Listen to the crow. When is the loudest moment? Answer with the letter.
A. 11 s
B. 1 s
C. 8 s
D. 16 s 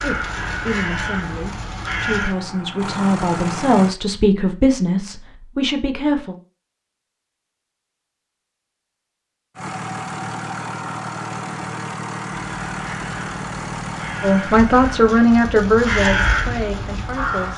D.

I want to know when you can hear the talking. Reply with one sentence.
You can hear the talking from 0.0 to 6.3 s and from 14.2 to 17.5 s.